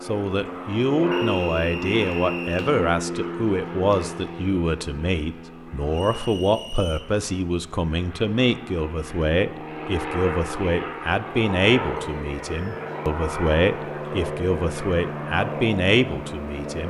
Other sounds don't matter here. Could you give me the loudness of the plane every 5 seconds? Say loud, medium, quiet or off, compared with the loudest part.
loud, medium, loud, loud.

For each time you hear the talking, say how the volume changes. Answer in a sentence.
You can hear the talking from 0.0 to 16.8 s, at a steady volume.